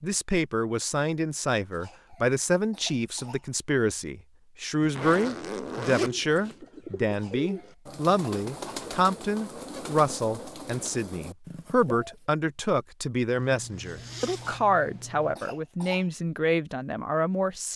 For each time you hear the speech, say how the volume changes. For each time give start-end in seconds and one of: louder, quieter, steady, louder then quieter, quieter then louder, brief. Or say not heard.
0.0-17.7 steady.